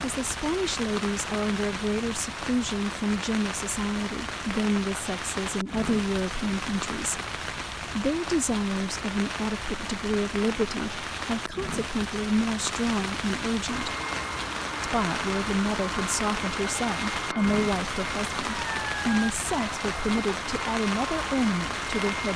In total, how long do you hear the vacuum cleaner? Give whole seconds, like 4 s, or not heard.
9 s.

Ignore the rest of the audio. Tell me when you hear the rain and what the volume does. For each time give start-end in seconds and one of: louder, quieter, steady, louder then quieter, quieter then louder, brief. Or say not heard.
0.0-22.3 steady.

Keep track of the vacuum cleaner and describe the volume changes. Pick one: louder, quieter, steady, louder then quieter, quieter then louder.
steady.